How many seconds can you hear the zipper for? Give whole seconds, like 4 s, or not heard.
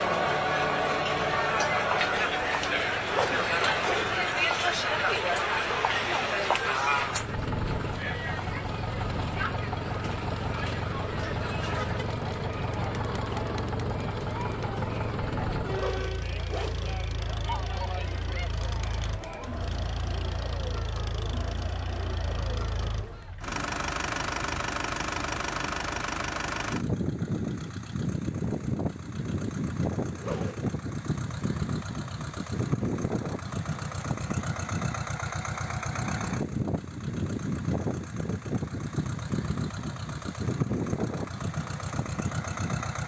3 s.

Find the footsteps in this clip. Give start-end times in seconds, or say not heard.
not heard.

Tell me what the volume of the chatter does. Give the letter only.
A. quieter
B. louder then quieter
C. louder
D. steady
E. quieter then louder
A.